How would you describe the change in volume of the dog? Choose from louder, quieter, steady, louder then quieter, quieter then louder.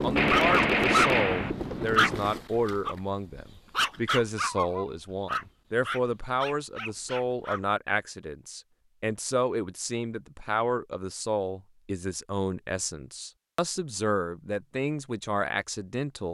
quieter.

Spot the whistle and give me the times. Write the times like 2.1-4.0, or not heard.
not heard.